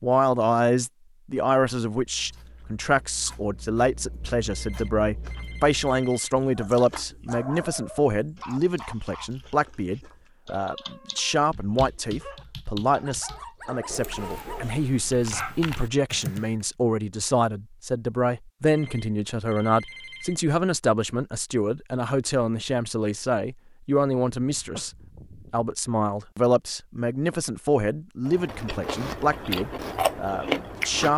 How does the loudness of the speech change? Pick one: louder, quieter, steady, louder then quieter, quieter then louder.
steady.